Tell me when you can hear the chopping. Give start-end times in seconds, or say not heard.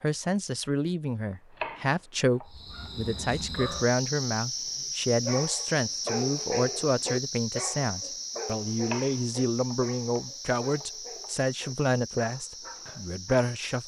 1.5-2.9, 8.8-11.3.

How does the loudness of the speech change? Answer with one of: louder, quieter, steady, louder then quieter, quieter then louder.
steady.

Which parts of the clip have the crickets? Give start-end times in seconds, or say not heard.
2.5-13.8.